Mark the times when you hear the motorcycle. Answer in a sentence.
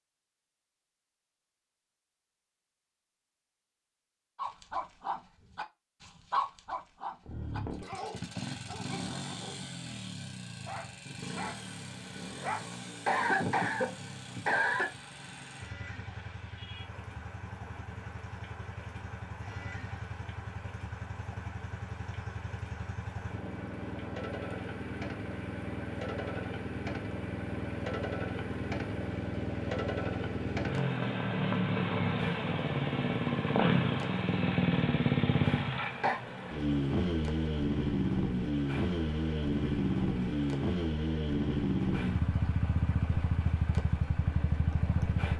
You can hear the motorcycle from 7.2 to 45.3 s.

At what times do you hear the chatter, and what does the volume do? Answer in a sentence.
The chatter can't be heard in this clip.